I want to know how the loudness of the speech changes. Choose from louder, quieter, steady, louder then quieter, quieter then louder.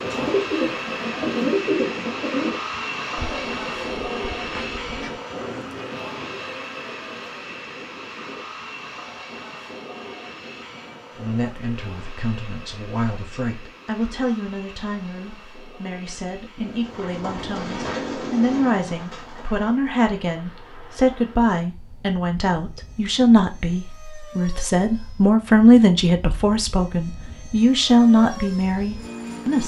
louder.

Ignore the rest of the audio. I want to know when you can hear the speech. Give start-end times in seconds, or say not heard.
11.2-29.6.